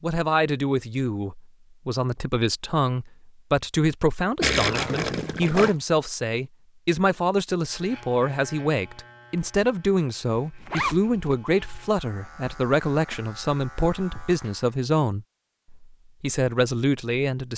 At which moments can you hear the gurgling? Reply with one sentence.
You can hear the gurgling from 4.4 to 5.7 s.